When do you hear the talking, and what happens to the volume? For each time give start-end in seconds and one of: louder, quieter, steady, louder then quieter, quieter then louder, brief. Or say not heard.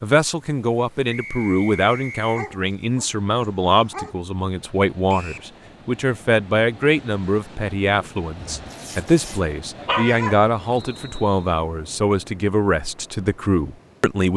0.0-14.3 steady.